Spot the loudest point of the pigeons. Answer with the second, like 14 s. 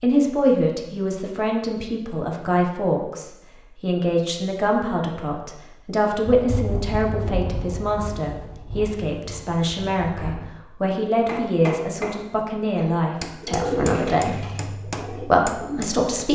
14 s.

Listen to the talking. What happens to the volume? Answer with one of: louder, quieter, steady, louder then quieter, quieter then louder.
steady.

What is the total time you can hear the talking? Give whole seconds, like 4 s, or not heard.
16 s.